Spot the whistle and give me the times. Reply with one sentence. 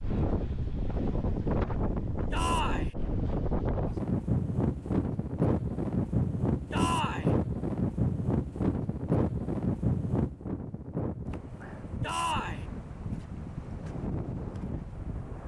You can't hear the whistle here.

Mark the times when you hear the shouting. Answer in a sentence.
The shouting can be heard from 2.3 to 3.0 s, from 6.7 to 7.3 s and from 12.0 to 12.7 s.